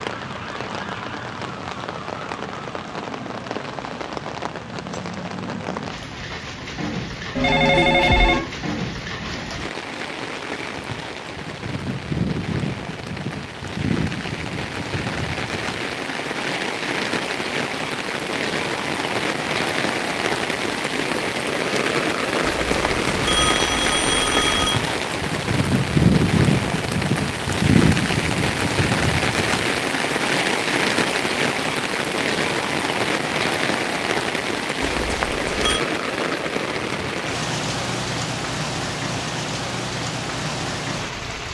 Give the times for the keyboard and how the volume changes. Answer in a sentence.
You can't hear the keyboard here.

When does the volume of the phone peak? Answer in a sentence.
The loudest moment of the phone is at 8 seconds.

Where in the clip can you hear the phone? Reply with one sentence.
You can hear the phone from 7.3 to 8.5 s, from 22.6 to 24.8 s and from 34.8 to 35.8 s.